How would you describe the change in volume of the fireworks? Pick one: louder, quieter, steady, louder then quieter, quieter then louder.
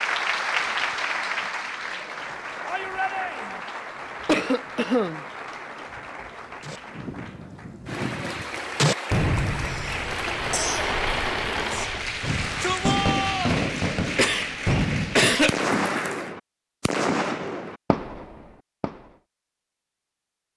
steady.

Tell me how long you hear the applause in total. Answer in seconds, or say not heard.
16 s.